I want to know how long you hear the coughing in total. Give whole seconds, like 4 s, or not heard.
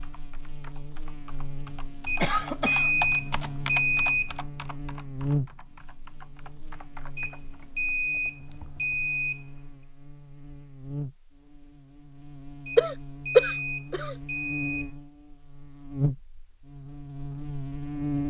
2 s.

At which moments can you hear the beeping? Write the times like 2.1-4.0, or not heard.
2.0-4.3, 7.2-9.4, 12.7-14.9.